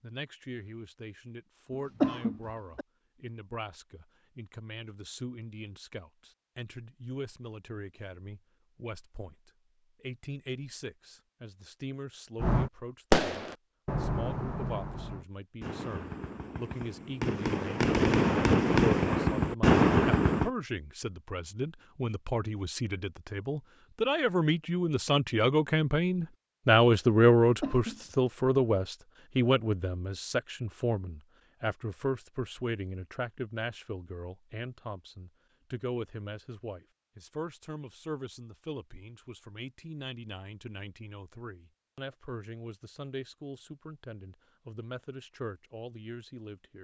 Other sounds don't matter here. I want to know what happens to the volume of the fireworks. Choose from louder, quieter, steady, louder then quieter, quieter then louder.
quieter then louder.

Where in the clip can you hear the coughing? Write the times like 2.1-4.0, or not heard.
1.7-2.9, 27.6-28.1.